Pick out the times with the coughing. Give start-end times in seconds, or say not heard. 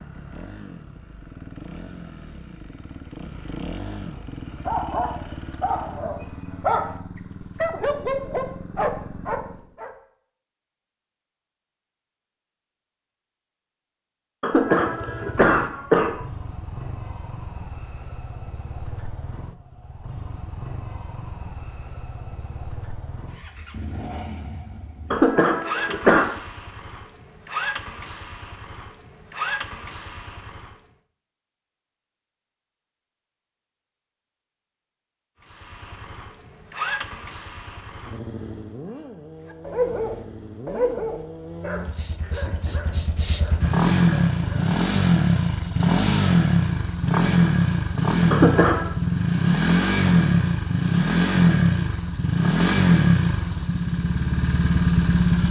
14.4-16.2, 25.1-26.2, 48.3-48.9.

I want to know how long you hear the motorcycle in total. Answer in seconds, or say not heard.
46 s.